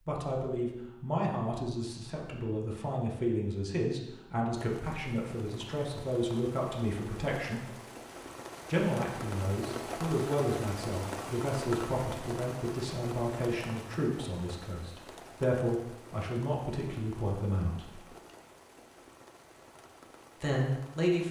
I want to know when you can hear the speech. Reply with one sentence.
You can hear the speech from 0.1 to 7.7 s, from 8.7 to 17.9 s and from 20.4 to 21.2 s.